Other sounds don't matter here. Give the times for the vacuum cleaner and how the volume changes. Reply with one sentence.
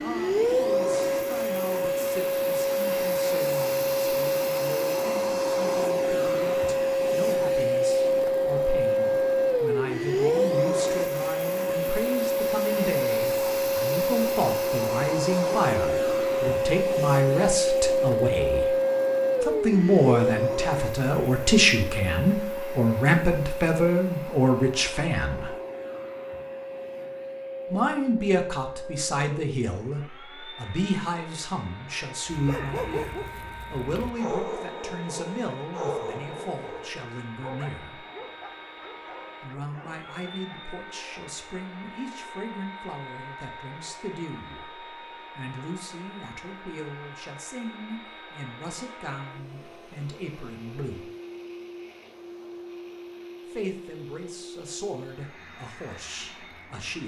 The vacuum cleaner can be heard from 0.0 to 57.0 s, getting quieter.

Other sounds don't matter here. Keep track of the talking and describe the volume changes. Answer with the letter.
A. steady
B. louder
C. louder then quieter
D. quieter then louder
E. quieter
C.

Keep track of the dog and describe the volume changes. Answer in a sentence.
The volume of the dog goes down.